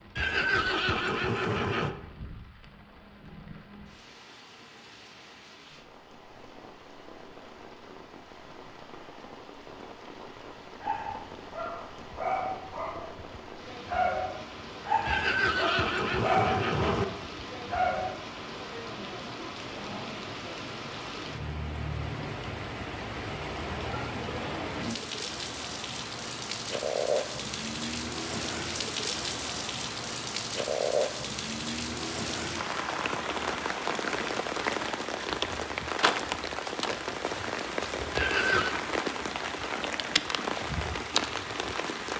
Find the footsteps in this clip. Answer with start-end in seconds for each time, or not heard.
not heard.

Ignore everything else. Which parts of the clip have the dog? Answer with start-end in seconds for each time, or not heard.
10.8-18.2.